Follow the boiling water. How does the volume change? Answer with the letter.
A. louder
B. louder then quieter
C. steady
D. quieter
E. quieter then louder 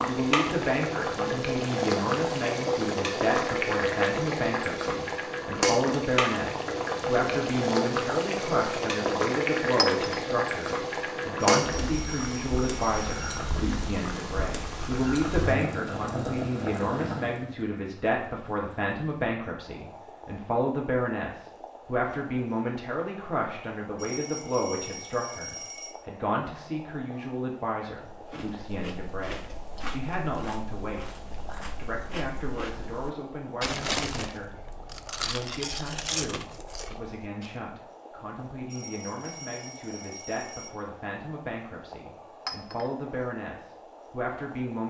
D.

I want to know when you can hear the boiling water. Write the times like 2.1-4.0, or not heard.
0.0-44.8.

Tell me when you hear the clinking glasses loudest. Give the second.
10 s.